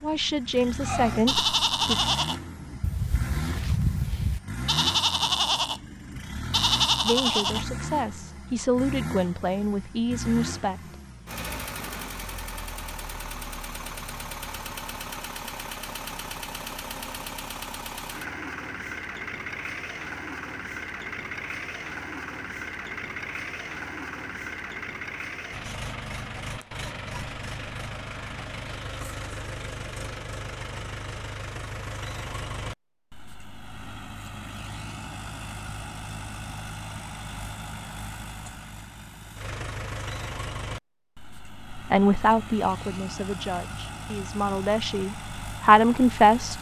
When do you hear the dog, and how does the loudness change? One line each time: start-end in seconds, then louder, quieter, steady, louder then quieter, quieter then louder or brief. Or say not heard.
not heard.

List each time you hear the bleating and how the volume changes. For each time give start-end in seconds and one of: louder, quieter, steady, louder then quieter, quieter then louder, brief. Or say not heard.
0.8-7.7 quieter then louder.